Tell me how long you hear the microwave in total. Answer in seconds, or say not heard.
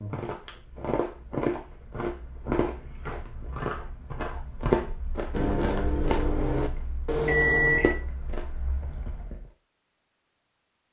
3 s.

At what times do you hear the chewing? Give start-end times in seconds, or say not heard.
0.0-9.4.